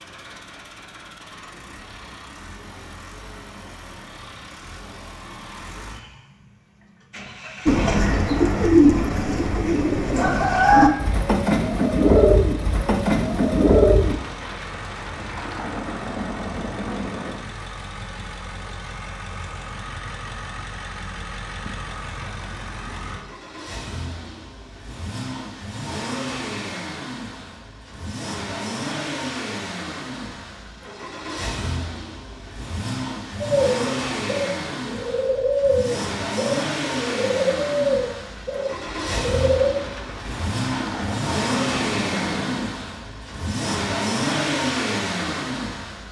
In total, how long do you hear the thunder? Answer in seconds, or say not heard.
7 s.